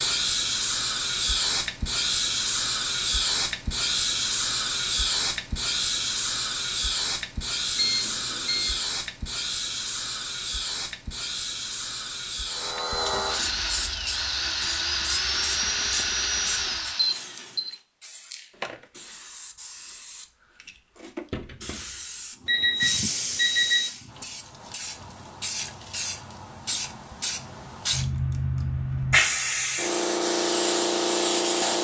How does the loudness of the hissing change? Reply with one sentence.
The volume of the hissing goes down, then up.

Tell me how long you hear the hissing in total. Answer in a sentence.
The hissing can be heard for 32 seconds in total.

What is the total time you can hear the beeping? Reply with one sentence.
You can hear the beeping for 3 seconds altogether.